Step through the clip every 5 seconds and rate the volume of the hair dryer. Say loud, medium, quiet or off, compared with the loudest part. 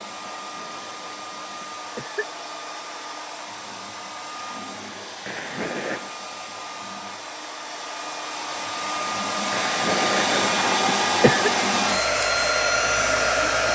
quiet, medium, loud.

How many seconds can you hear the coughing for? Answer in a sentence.
You can hear the coughing for 5 seconds altogether.